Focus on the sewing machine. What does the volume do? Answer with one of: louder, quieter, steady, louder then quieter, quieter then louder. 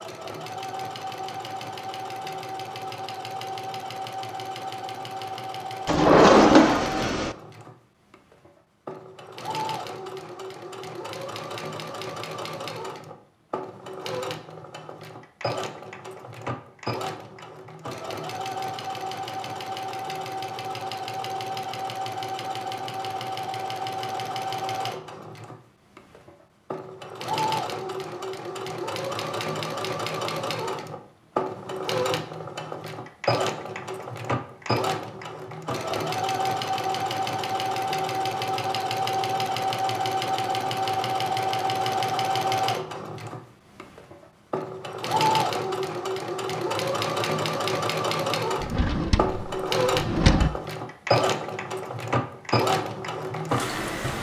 louder.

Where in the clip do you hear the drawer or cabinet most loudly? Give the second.
6 s.